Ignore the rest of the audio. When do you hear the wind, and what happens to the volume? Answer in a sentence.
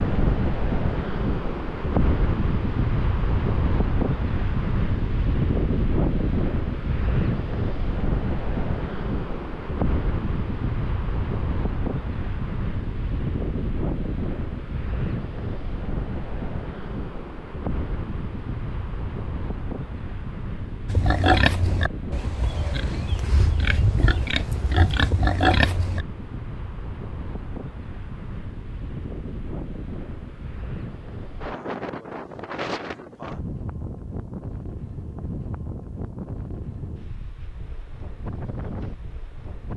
The wind can be heard from 0.0 to 39.7 s, getting quieter.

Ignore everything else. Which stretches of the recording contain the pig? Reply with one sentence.
You can hear the pig from 20.9 to 26.1 s.